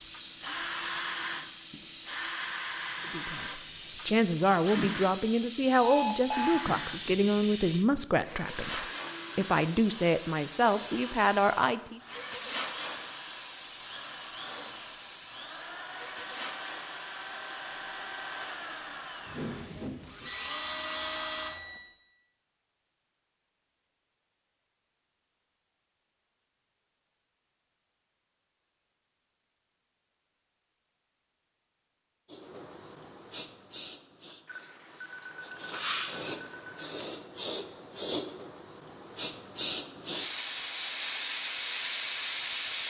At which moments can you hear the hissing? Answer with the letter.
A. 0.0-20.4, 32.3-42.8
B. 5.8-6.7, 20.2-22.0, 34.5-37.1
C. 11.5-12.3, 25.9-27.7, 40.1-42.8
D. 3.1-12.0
A.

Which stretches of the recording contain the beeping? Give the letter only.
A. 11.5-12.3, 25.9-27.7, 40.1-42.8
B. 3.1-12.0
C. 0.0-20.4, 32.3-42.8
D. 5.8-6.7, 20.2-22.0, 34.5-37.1
D.